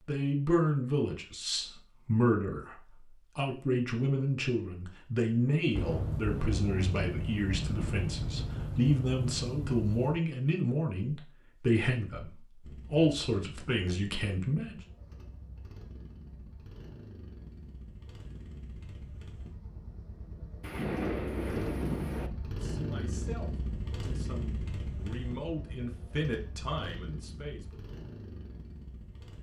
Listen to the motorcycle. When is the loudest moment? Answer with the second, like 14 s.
23 s.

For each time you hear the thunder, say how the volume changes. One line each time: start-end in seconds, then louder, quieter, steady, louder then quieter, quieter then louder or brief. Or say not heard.
5.8-10.2 steady
20.6-22.3 brief.